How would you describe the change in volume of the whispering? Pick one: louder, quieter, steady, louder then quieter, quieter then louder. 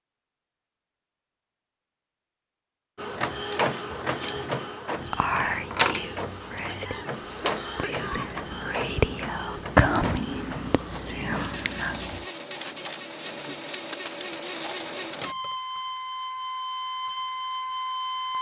louder.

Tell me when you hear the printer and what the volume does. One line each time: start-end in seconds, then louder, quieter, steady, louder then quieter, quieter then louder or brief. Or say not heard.
3.0-18.3 quieter then louder.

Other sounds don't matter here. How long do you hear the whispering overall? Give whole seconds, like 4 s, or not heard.
7 s.